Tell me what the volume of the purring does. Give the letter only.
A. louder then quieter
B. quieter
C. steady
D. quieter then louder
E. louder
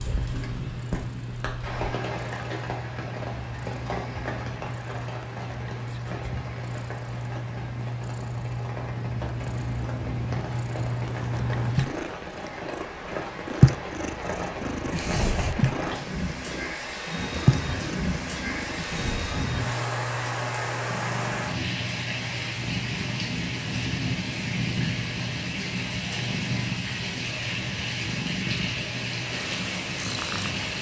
A.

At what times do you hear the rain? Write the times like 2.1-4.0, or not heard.
0.0-30.7.